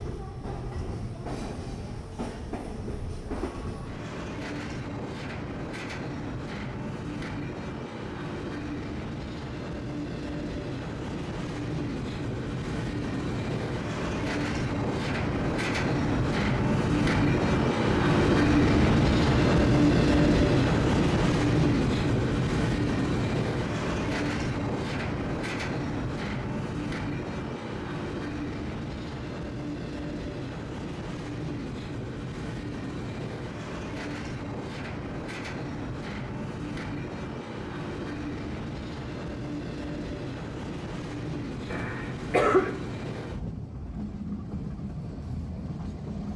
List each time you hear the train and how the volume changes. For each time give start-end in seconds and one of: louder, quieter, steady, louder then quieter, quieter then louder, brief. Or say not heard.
0.0-46.3 louder then quieter.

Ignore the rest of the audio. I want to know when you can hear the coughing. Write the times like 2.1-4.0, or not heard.
41.7-42.8.